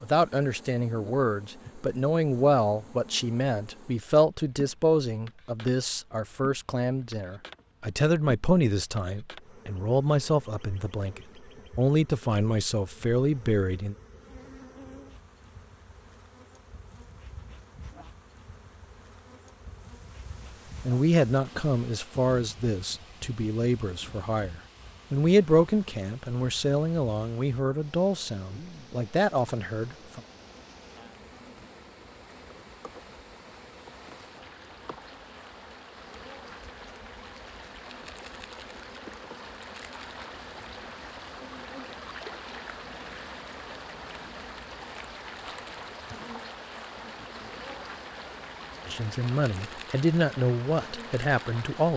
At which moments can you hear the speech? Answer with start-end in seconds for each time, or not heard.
0.0-13.9, 20.8-30.2, 48.9-51.9.